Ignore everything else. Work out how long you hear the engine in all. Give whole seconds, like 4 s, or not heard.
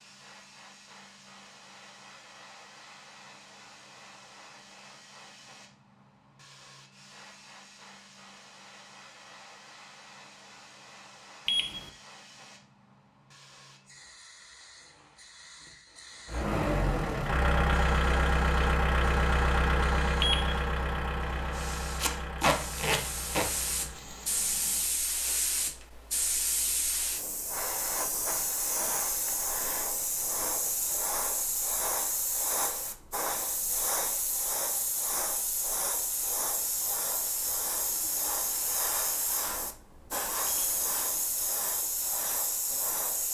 9 s.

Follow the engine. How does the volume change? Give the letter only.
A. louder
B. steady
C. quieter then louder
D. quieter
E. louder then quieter
D.